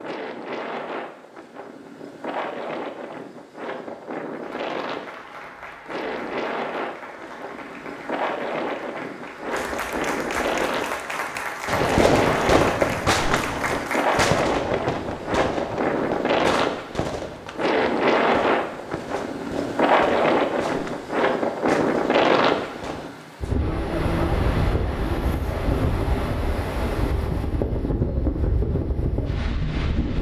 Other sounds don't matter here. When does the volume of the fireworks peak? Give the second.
13 s.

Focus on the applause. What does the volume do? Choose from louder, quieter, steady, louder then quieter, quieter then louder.
louder.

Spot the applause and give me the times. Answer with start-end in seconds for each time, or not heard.
4.4-14.3.